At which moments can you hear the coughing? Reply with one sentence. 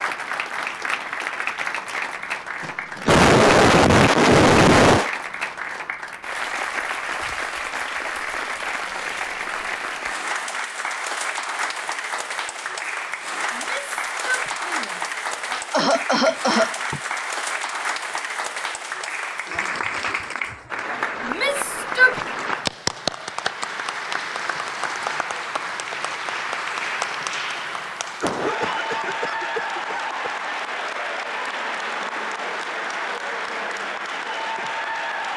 You can hear the coughing from 2.6 to 5.1 s, from 15.7 to 17.0 s and from 28.2 to 30.4 s.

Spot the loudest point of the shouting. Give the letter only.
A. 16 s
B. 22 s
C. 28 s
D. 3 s
B.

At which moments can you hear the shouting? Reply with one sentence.
The shouting can be heard from 13.5 to 15.6 s and from 21.2 to 22.2 s.